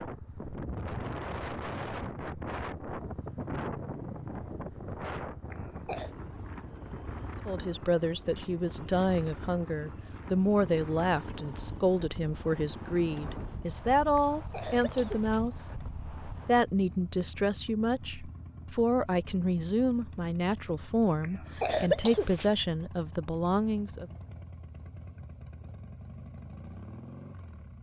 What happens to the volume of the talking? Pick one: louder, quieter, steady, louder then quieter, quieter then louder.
steady.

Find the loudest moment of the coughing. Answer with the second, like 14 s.
22 s.